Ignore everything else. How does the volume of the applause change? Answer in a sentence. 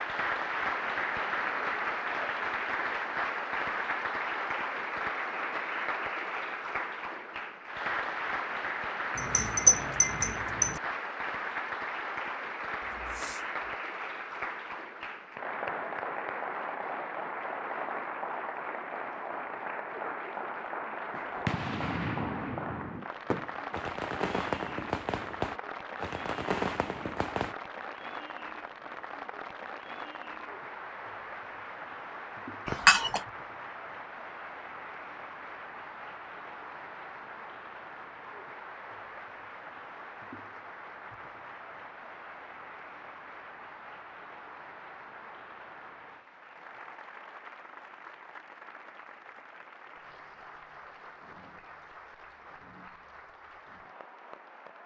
The volume of the applause goes down.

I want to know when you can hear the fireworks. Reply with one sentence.
You can hear the fireworks from 21.1 to 27.6 s.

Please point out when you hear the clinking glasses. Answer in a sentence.
The clinking glasses can be heard from 9.2 to 10.8 s and from 32.6 to 33.2 s.